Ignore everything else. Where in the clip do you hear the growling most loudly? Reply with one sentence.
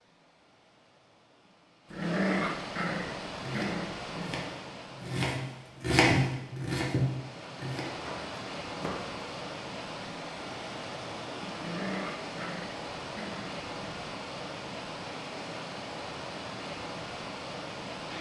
The volume of the growling peaks at 2 seconds.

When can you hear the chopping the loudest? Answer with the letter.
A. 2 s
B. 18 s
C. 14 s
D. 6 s
D.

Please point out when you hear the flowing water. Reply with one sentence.
You can hear the flowing water from 0.0 to 18.1 s.